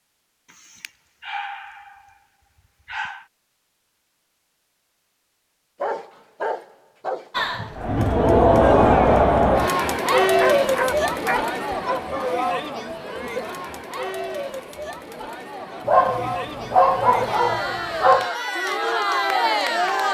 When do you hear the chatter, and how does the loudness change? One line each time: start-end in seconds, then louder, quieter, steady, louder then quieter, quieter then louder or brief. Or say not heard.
7.3-20.0 quieter then louder.